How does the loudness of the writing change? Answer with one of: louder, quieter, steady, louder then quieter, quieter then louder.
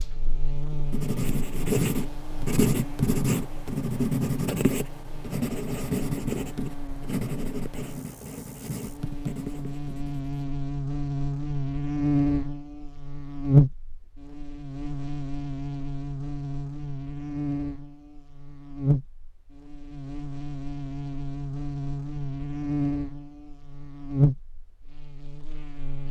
quieter.